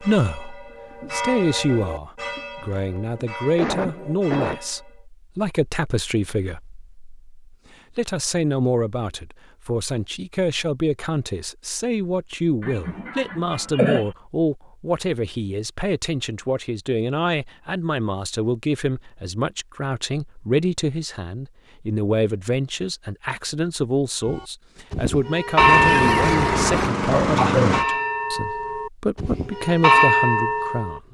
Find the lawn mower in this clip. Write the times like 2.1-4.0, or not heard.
25.8-27.9.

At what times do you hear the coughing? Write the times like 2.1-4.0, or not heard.
2.5-4.6, 12.6-14.1, 25.6-27.6.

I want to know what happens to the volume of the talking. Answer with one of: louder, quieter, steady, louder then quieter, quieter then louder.
steady.